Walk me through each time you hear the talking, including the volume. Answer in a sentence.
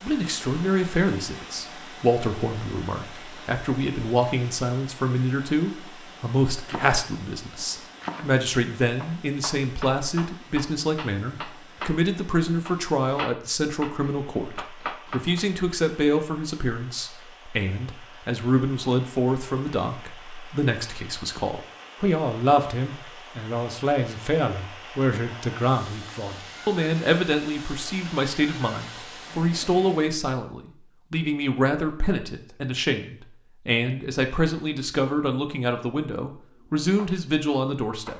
You can hear the talking from 0.0 to 38.1 s, at a steady volume.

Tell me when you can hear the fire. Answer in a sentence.
You can't hear the fire here.